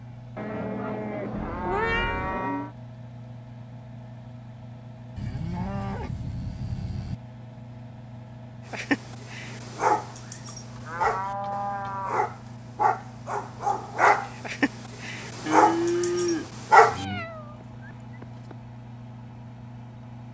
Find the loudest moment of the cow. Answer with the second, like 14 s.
16 s.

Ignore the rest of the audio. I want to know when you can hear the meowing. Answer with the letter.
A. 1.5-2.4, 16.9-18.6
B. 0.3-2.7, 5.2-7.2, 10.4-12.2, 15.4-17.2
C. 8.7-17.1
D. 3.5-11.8
A.